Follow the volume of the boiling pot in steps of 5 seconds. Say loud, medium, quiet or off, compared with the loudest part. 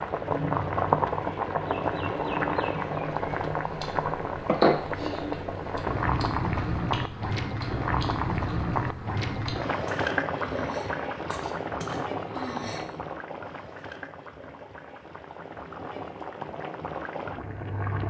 loud, loud, medium, medium.